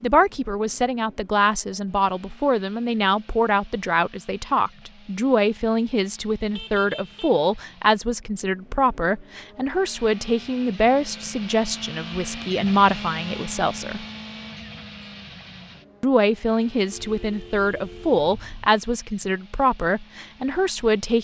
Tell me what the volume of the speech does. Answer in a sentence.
The volume of the speech stays about the same.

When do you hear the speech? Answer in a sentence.
The speech can be heard from 0.0 to 14.1 s and from 16.0 to 21.1 s.